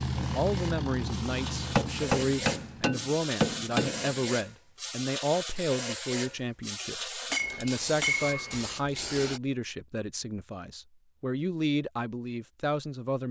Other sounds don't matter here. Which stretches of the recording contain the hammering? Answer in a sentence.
You can hear the hammering from 1.8 to 4.2 s and from 7.3 to 9.1 s.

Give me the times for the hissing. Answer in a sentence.
The hissing can be heard from 0.0 to 9.4 s.